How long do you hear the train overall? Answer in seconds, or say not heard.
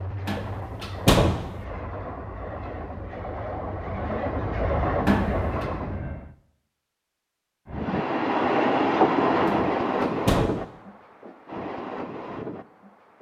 12 s.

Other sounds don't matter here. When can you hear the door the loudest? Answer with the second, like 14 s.
1 s.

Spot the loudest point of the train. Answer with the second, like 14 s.
9 s.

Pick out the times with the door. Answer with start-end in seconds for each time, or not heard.
0.2-1.4, 5.0-5.7, 9.4-10.5.